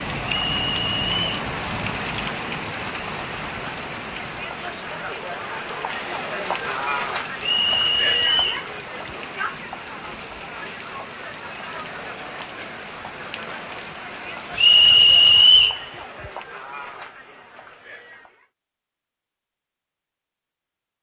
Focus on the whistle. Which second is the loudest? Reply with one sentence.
The loudest moment of the whistle is at 15 seconds.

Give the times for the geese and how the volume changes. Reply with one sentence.
You can't hear the geese here.